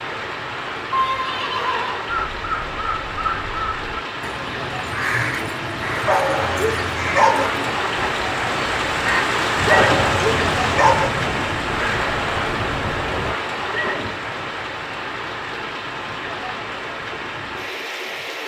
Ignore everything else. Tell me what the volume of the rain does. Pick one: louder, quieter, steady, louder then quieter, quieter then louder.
louder then quieter.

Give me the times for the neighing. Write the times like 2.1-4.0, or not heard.
0.9-2.0, 9.7-10.2, 13.7-14.2.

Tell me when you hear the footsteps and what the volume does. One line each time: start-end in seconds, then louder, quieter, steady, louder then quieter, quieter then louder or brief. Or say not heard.
not heard.